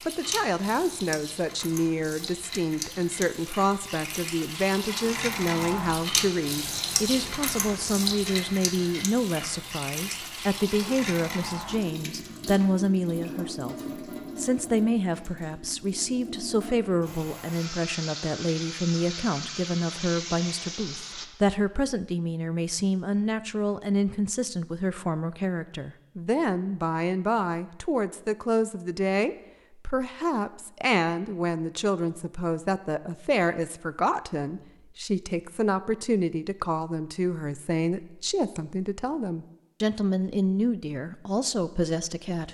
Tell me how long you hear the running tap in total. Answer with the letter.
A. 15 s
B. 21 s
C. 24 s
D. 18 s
B.